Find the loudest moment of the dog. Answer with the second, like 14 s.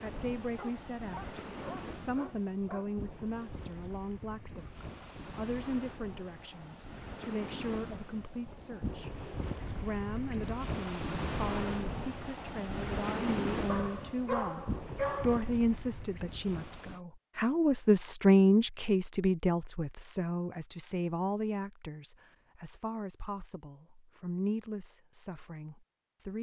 15 s.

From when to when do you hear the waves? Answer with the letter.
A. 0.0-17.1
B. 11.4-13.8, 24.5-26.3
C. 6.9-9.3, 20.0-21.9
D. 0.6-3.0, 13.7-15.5
A.